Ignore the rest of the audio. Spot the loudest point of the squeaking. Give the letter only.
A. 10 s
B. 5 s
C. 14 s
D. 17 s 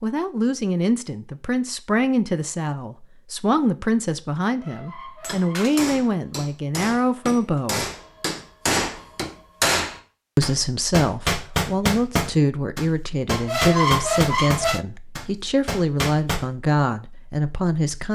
C.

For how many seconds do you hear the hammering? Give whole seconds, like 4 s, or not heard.
11 s.